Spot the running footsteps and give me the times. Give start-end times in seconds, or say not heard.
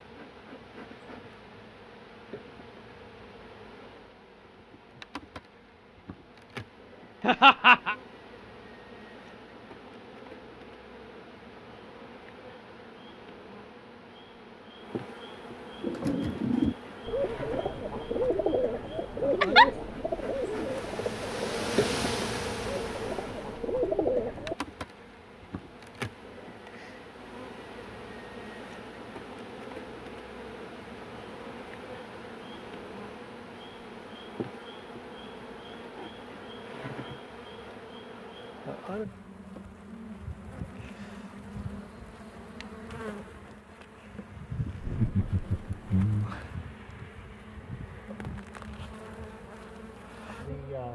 not heard.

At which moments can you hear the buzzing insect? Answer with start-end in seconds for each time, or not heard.
0.0-50.8.